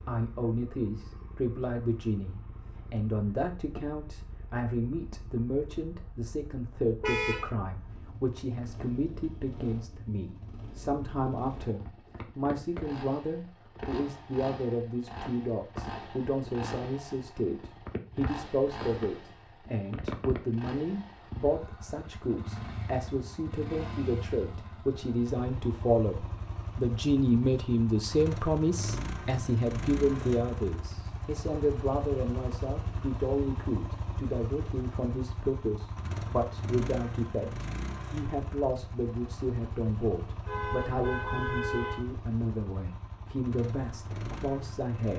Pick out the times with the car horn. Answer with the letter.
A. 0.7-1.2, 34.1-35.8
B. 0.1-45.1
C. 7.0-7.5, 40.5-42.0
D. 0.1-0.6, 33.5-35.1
C.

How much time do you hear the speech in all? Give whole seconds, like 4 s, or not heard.
45 s.